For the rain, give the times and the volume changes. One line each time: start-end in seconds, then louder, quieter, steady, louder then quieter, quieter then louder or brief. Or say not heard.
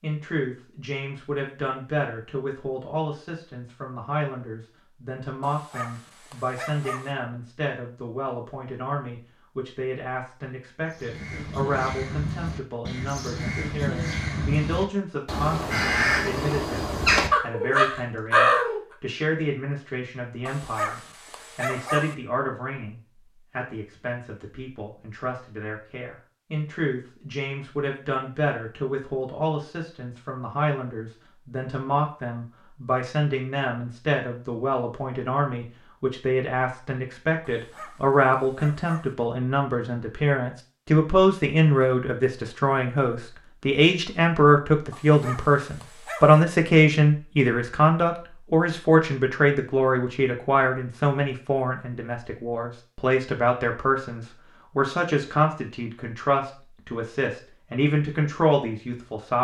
not heard.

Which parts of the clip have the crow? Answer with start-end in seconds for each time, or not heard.
10.9-18.8.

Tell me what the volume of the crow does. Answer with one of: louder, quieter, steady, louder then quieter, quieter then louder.
louder.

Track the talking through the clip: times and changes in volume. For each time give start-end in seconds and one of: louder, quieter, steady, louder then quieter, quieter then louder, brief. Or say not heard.
0.0-59.4 louder.